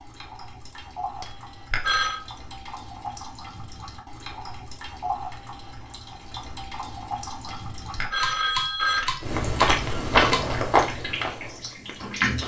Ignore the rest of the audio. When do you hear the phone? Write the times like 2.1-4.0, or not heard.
1.2-2.2, 7.5-9.2.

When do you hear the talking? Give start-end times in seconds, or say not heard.
not heard.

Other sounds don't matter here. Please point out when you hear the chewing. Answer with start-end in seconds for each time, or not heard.
9.2-12.4.